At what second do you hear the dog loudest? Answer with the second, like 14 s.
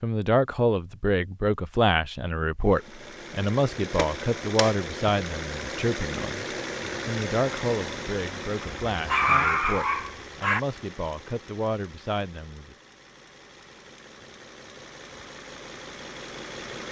9 s.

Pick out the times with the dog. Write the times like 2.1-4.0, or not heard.
8.9-10.6.